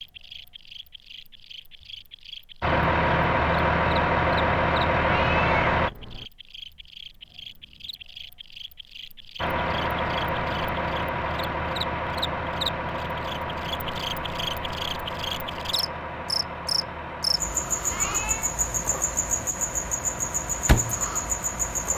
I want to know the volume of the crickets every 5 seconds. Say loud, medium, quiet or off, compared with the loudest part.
quiet, quiet, medium, loud, loud.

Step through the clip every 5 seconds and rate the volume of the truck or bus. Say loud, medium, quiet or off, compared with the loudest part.
loud, loud, medium, quiet, quiet.